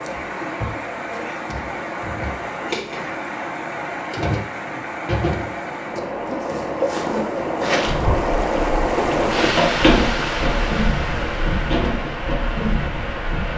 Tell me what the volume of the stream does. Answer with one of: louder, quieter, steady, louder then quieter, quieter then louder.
louder then quieter.